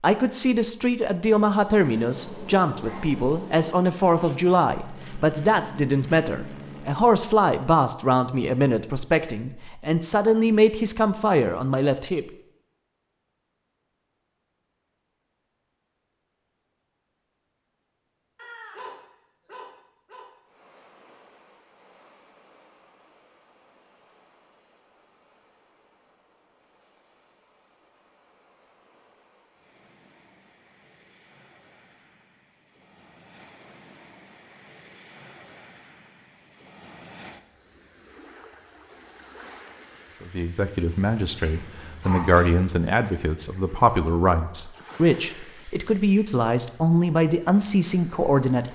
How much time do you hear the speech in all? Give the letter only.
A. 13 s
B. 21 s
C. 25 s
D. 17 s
B.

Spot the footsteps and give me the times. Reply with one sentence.
The footsteps can't be heard in this clip.